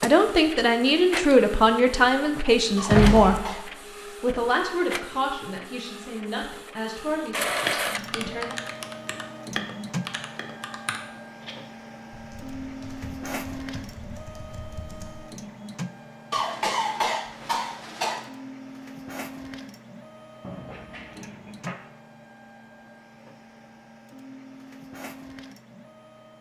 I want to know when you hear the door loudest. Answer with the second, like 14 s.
3 s.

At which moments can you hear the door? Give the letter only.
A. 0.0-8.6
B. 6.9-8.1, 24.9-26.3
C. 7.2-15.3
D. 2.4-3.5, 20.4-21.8
D.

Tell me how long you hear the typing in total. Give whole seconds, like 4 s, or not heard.
8 s.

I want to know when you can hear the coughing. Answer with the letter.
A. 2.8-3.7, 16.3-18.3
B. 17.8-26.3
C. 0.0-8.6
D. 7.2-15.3
A.